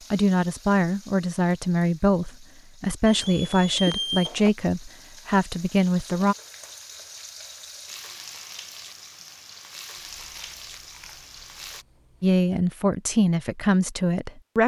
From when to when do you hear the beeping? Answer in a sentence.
You can hear the beeping from 3.0 to 4.5 s.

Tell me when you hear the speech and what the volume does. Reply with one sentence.
You can hear the speech from 0.1 to 6.3 s, at a steady volume; and briefly from 12.2 to 14.6 s.